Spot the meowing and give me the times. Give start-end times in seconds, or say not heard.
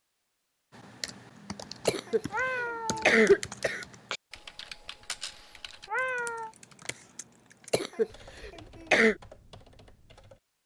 2.1-3.1, 5.7-6.5.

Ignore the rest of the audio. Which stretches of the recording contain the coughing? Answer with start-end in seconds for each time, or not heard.
1.9-3.9, 7.7-9.2.